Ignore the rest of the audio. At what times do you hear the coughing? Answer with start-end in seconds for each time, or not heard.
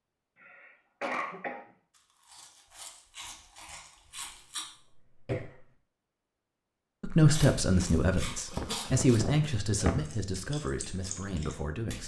0.3-1.6, 4.2-5.7, 8.5-10.1.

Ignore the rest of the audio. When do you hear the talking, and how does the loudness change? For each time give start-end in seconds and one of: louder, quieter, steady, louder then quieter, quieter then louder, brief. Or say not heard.
7.0-12.0 quieter.